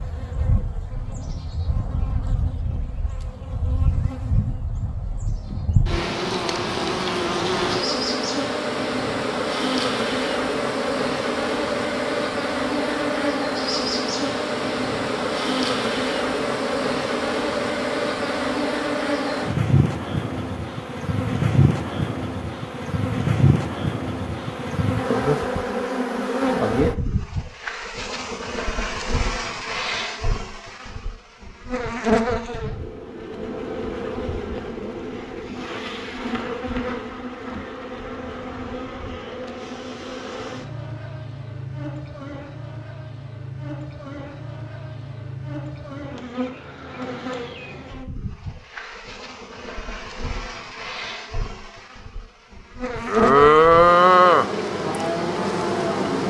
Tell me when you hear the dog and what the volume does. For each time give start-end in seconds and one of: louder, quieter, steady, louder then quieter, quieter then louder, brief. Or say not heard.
not heard.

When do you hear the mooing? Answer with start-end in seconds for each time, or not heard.
53.0-56.2.